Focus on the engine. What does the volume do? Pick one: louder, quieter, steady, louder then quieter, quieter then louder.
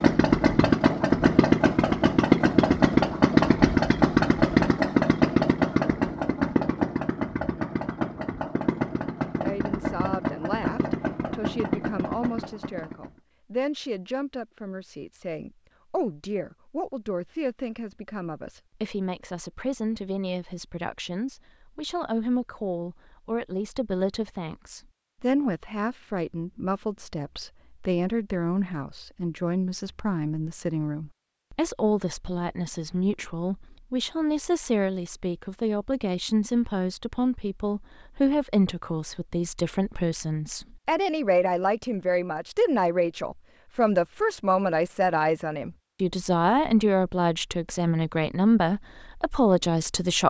quieter.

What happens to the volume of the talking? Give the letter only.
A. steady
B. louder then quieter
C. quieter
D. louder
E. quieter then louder
D.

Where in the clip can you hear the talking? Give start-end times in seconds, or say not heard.
9.4-50.2.